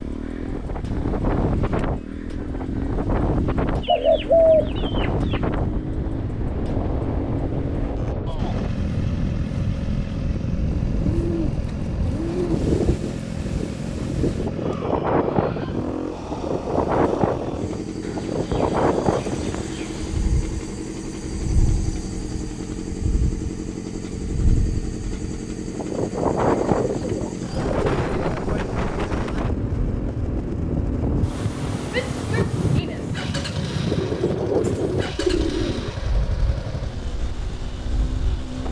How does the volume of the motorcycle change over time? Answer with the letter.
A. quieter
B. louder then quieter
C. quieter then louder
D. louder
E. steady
E.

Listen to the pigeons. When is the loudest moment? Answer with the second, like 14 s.
4 s.